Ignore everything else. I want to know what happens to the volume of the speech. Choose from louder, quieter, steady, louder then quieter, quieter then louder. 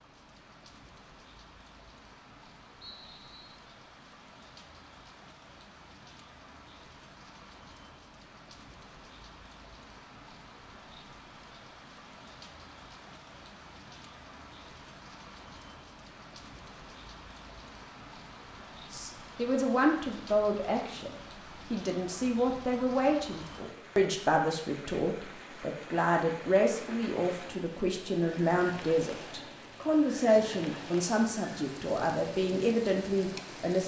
steady.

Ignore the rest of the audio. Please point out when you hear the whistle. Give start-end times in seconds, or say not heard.
2.8-3.6.